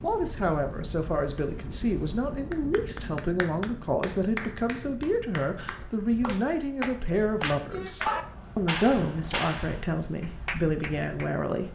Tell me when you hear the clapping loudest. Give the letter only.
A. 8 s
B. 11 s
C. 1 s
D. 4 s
A.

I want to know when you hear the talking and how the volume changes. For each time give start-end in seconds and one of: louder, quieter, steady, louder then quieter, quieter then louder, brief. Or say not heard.
0.0-11.6 steady.